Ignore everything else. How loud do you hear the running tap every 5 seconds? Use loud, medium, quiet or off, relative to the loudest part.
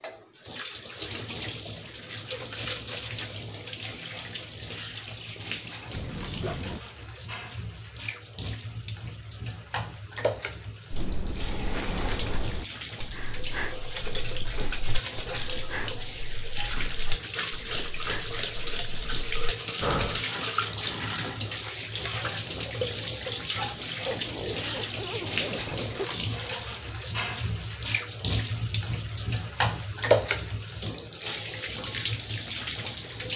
medium, quiet, medium, loud, loud, loud, loud.